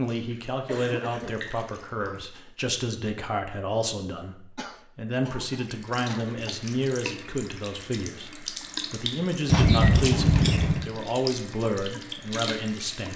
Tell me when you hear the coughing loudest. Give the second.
10 s.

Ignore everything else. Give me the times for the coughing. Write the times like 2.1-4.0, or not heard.
0.7-2.3, 4.5-6.6, 9.4-10.9.